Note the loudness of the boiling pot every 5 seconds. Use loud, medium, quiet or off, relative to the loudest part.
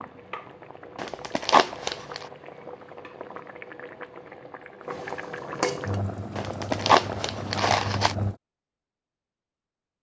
medium, loud.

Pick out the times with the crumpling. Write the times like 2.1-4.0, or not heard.
0.9-2.2, 6.3-8.2.